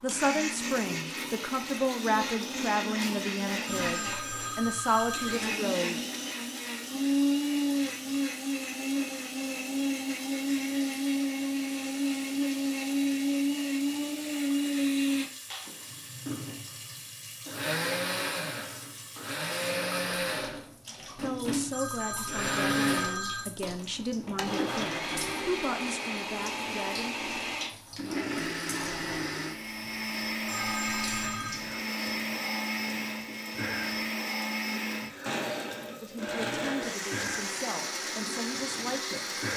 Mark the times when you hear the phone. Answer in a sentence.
The phone can be heard from 3.6 to 5.5 s, from 21.7 to 23.8 s and from 30.4 to 31.6 s.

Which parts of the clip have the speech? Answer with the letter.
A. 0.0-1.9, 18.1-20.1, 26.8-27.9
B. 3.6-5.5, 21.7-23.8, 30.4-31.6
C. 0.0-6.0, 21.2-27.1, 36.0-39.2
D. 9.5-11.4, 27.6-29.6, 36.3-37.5
C.